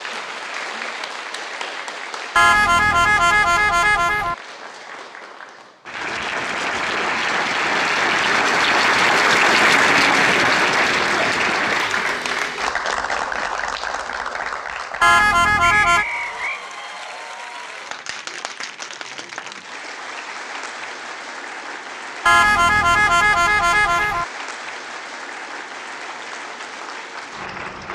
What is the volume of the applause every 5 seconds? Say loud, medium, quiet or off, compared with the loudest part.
quiet, loud, loud, quiet, quiet, quiet.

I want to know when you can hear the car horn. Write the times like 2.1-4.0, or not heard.
2.4-4.3, 15.0-16.1, 22.2-24.2.